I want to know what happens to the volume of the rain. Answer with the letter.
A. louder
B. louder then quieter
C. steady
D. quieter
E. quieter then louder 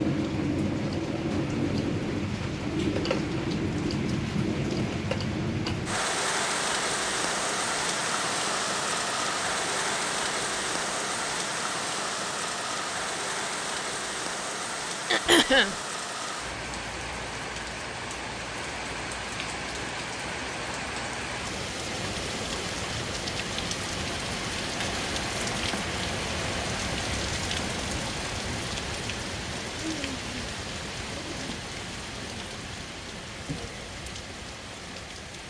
D.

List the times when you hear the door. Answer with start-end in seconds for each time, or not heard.
not heard.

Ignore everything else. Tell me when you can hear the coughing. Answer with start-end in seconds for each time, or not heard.
15.1-15.8.